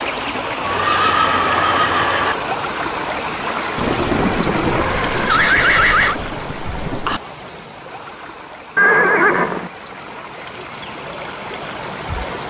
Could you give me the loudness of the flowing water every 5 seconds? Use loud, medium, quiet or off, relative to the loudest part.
loud, medium, medium.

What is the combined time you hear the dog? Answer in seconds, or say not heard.
not heard.